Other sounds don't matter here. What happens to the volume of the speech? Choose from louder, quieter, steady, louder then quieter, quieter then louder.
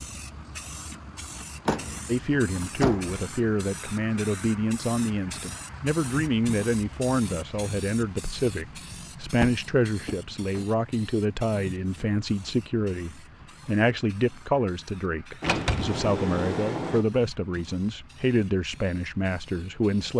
steady.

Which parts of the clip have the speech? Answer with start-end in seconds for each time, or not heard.
2.0-20.1.